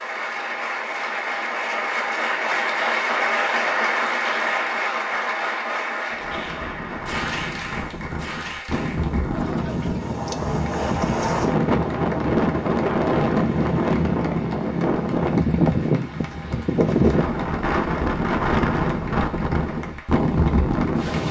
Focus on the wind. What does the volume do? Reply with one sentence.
The volume of the wind goes up.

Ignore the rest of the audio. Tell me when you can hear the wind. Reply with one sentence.
You can hear the wind from 6.1 to 21.2 s.